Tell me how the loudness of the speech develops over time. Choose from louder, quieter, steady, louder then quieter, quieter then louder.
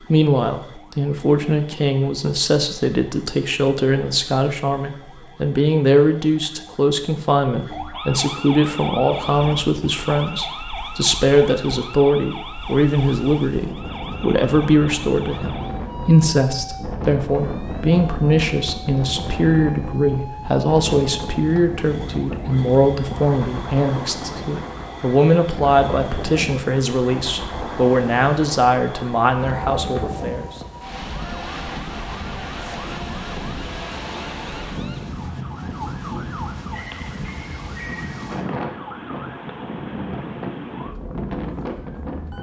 steady.